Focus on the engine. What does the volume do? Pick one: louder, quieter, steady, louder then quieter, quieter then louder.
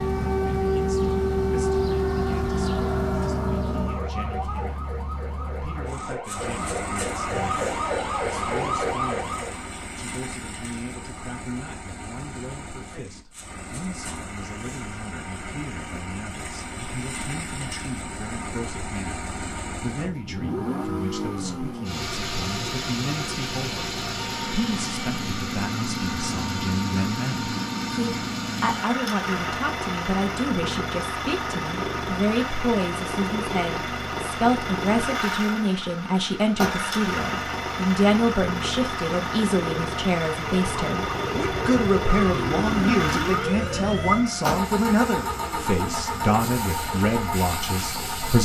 louder.